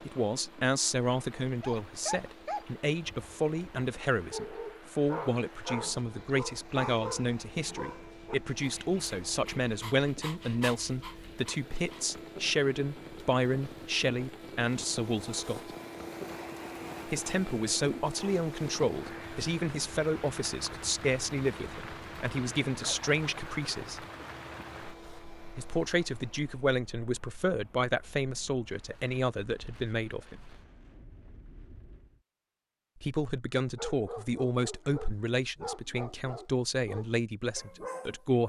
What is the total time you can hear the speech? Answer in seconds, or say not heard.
33 s.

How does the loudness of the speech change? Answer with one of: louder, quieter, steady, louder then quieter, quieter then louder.
steady.